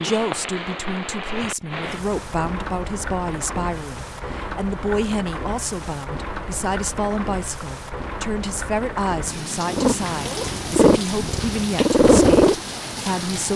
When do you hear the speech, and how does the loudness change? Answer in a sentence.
The speech can be heard from 0.0 to 13.5 s, at a steady volume.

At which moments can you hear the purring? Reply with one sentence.
You can hear the purring from 9.7 to 13.5 s.